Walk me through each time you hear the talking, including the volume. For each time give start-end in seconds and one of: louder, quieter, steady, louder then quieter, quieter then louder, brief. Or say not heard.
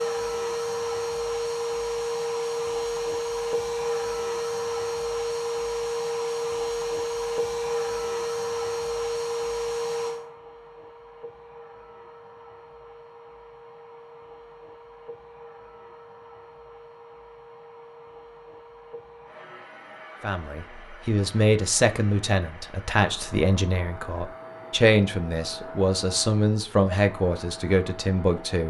20.2-28.6 steady.